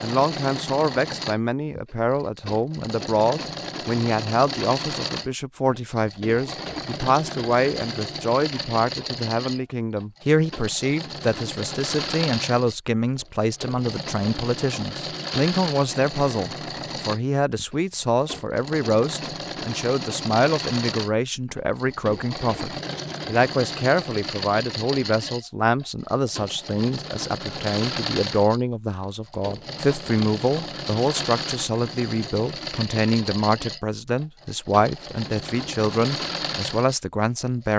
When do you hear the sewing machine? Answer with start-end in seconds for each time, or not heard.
0.0-37.7.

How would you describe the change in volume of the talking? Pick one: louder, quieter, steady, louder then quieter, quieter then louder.
steady.